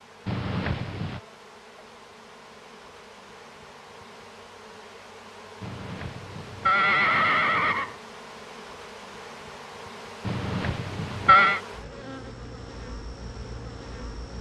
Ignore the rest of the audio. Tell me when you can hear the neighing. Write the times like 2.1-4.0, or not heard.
0.2-1.2, 5.6-8.0, 10.2-11.6.